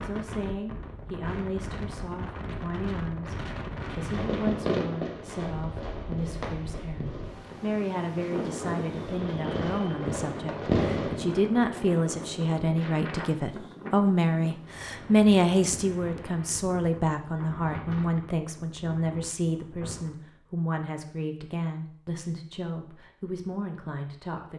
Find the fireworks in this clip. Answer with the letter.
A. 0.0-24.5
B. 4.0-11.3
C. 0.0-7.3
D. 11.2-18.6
B.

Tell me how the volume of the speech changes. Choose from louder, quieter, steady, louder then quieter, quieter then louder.
louder then quieter.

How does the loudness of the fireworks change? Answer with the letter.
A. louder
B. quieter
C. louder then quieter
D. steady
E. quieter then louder
E.